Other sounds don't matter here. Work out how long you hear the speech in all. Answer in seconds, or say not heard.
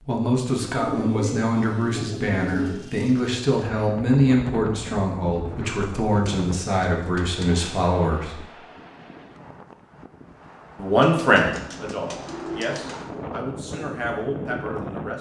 13 s.